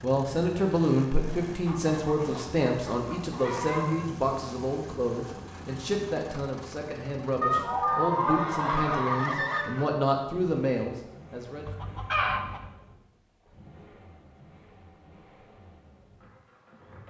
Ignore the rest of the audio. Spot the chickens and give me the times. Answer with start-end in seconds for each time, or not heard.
1.6-4.1, 7.4-9.8, 11.7-12.7.